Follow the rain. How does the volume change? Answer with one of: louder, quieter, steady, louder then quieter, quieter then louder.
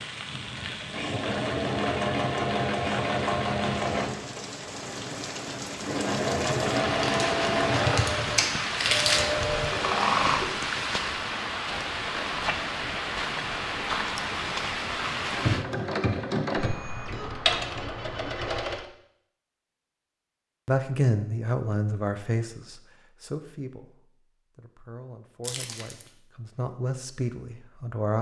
louder.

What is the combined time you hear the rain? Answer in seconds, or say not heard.
16 s.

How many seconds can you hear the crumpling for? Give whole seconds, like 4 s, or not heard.
3 s.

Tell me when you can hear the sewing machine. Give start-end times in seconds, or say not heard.
0.5-10.6, 15.2-18.9.